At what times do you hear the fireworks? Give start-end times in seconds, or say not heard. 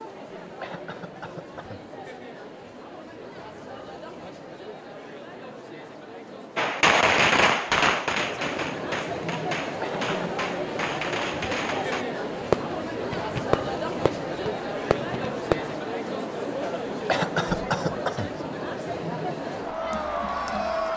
6.5-15.8.